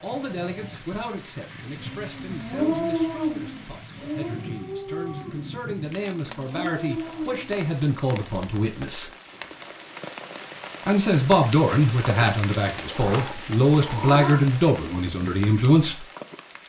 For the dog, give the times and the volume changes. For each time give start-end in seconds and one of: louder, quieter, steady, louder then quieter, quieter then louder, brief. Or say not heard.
1.6-7.7 quieter then louder.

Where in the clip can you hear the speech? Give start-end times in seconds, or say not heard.
0.0-9.1, 10.8-16.1.